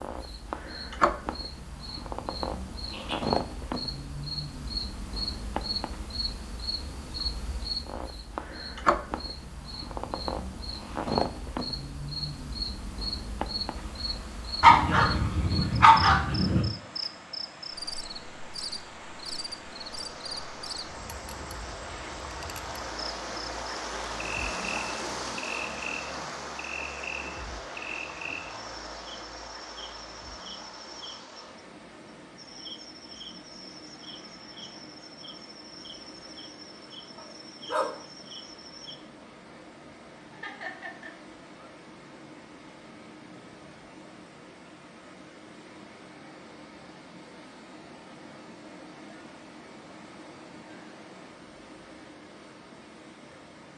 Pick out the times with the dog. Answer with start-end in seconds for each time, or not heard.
14.6-16.6, 37.1-38.0.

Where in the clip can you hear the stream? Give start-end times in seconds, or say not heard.
13.7-53.7.